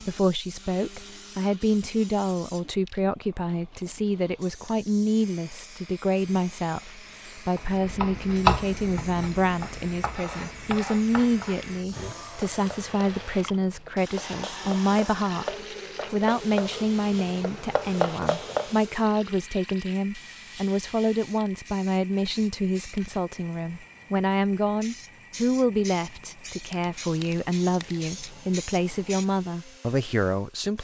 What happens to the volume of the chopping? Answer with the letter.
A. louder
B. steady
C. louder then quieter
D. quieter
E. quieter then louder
E.